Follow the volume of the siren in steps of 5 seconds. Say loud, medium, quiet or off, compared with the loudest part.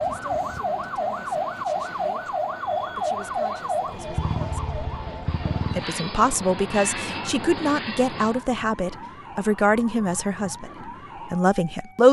loud, medium, quiet.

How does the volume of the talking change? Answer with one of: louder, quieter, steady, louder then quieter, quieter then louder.
louder.